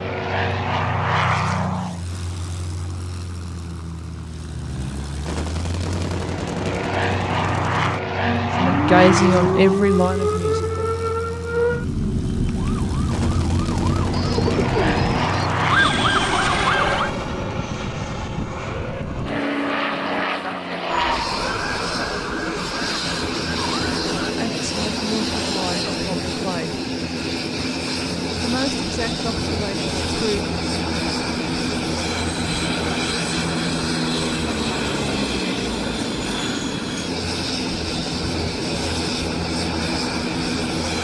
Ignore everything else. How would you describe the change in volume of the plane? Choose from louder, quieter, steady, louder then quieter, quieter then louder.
steady.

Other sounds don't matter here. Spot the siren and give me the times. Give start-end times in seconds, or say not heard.
8.2-17.1, 20.9-24.4.